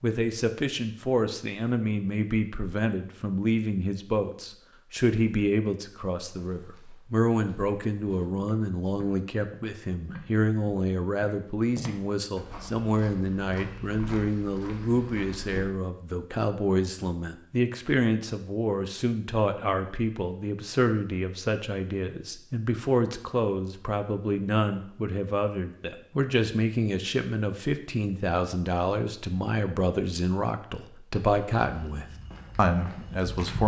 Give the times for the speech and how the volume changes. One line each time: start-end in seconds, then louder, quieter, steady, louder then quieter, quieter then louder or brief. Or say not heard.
0.0-33.6 steady.